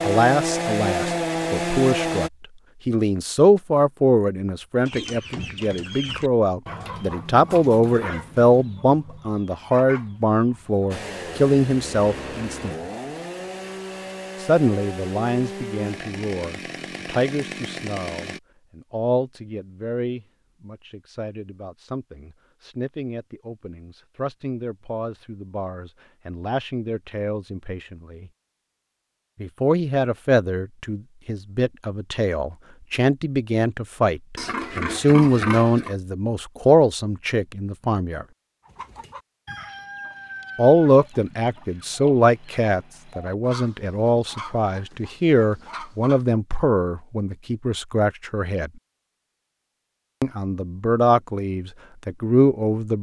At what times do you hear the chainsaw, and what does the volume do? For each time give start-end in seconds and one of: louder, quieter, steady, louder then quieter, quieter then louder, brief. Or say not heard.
0.0-2.3 brief
10.9-18.4 steady.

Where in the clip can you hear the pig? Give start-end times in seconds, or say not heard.
34.4-36.0.